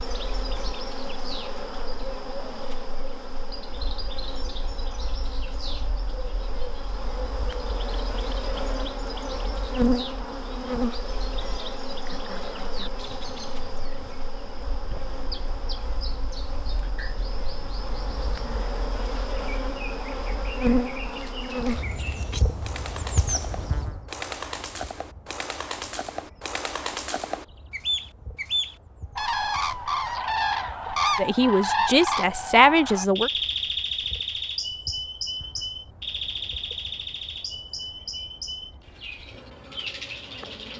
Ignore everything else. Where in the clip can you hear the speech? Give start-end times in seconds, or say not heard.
31.1-33.3.